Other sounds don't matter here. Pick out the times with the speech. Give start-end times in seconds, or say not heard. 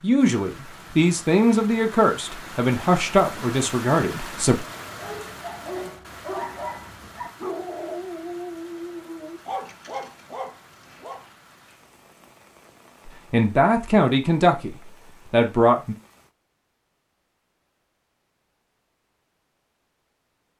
0.0-4.7, 13.3-15.9.